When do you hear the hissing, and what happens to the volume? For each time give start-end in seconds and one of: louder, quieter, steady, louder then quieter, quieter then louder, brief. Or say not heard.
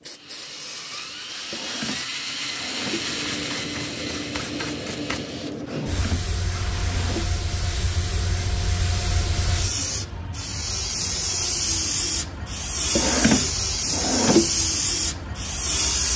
0.0-16.1 louder.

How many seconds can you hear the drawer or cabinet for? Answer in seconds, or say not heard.
5 s.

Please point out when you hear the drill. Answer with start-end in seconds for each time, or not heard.
0.0-7.3.